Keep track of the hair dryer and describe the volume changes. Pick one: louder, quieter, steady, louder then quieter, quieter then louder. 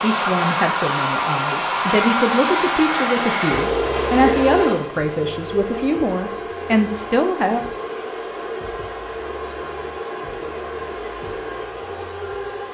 quieter.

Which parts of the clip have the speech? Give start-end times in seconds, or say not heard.
0.0-7.6.